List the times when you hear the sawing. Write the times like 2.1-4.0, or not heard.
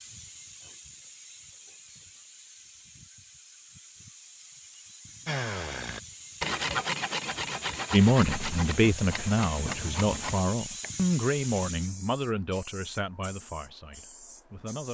5.2-10.9.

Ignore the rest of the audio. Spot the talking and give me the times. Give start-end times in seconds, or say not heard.
7.9-14.8.